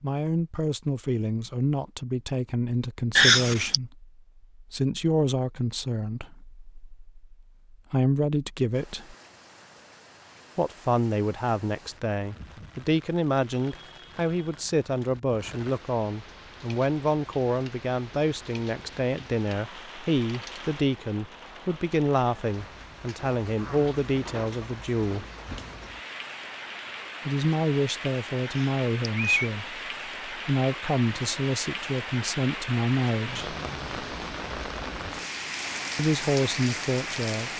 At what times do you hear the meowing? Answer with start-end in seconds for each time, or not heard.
3.1-3.8, 28.4-29.5.